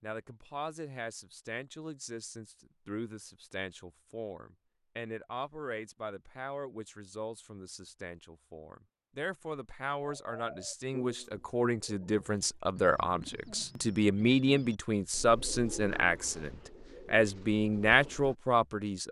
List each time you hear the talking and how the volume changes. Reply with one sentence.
You can hear the talking from 0.0 to 19.0 s, getting louder.